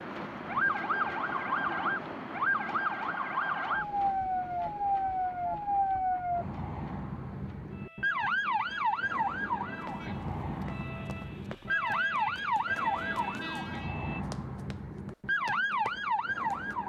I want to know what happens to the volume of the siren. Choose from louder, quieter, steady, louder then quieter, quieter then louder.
steady.